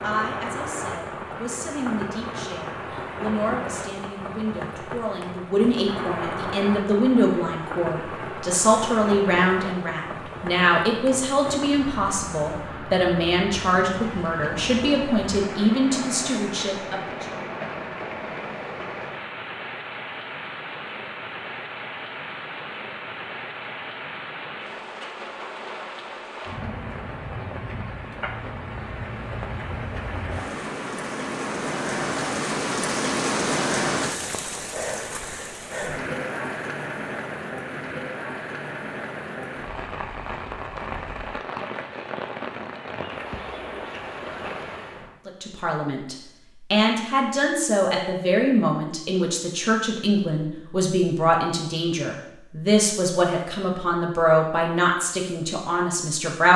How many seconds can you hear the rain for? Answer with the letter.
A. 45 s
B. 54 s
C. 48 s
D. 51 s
A.